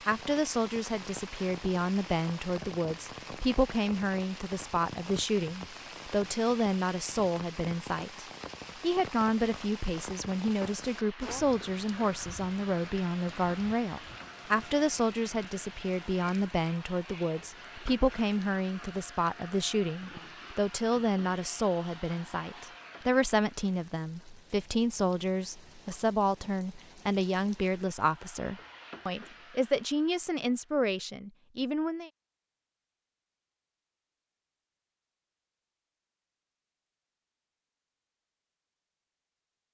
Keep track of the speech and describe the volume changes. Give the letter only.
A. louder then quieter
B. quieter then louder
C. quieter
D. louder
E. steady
E.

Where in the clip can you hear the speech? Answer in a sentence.
You can hear the speech from 0.1 to 32.1 s.